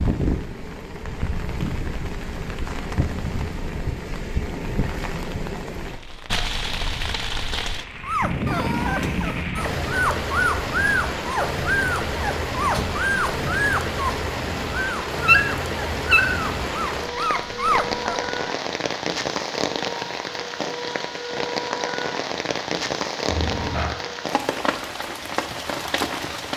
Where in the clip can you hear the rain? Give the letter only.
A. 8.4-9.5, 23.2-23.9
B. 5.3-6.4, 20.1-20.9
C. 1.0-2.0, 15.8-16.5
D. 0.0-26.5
D.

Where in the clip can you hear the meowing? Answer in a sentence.
You can hear the meowing from 8.4 to 9.5 s and from 23.2 to 23.9 s.